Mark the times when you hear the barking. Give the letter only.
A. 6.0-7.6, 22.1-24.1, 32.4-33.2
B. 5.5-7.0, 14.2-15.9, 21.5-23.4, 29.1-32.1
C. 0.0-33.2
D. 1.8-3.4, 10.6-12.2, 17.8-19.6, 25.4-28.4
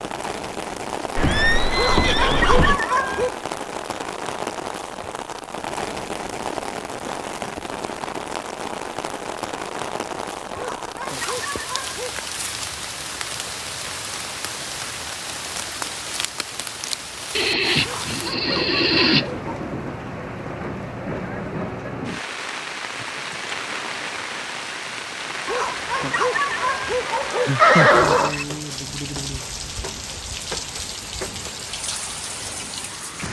D.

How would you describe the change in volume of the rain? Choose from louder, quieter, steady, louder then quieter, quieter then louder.
steady.